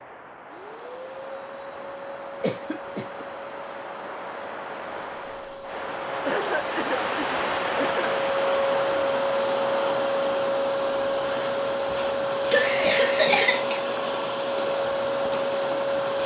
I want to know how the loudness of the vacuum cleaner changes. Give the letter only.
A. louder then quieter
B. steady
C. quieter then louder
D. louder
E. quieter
D.